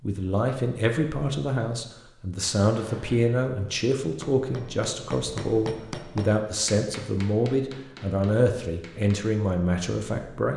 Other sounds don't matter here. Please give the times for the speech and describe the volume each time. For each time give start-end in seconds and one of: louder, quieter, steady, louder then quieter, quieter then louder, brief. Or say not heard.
0.0-10.5 steady.